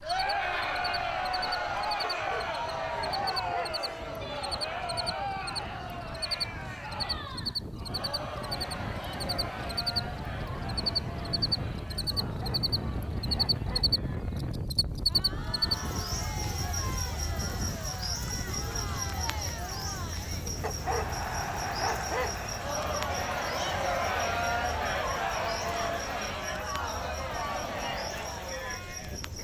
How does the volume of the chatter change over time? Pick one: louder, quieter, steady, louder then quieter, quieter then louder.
quieter then louder.